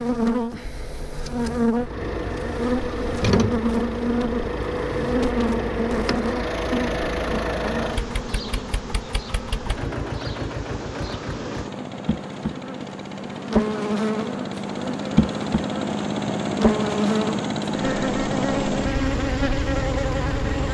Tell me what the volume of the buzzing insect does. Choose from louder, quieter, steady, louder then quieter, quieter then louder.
quieter then louder.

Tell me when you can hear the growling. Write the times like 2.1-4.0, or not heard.
not heard.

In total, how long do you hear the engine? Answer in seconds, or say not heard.
19 s.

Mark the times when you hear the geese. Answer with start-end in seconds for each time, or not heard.
not heard.